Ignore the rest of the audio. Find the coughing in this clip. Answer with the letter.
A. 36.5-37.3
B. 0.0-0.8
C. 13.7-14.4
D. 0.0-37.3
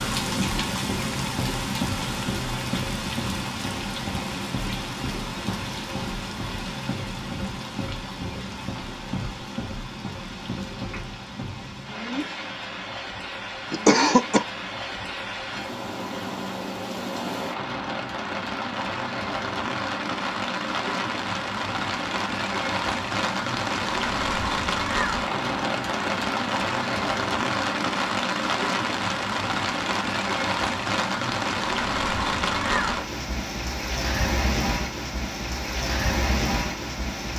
C.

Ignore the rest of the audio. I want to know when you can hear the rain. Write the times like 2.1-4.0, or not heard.
0.0-37.3.